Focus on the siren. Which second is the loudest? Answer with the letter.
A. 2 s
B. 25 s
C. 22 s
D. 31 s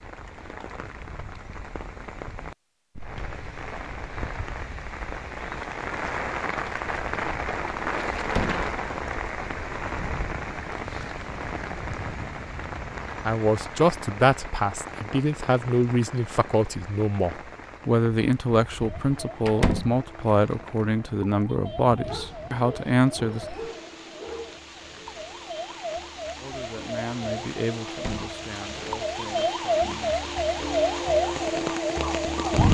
D.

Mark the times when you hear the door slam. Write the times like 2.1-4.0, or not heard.
8.2-8.7, 19.4-20.0, 27.9-28.4.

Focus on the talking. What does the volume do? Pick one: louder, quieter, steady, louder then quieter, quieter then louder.
quieter.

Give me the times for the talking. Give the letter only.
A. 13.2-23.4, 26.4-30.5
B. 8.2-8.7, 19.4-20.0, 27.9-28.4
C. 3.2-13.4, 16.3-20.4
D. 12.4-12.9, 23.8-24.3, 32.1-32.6
A.